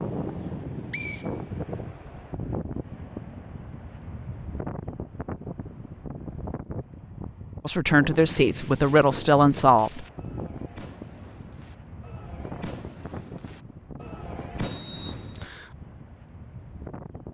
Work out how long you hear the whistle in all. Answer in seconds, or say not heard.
3 s.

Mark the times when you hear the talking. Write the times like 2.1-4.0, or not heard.
7.7-10.1.